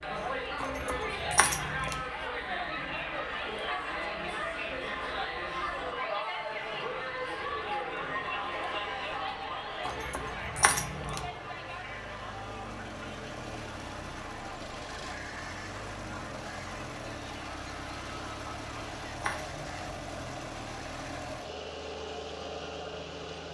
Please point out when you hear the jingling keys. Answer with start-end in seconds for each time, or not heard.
0.6-2.0, 9.8-11.3, 18.6-19.6.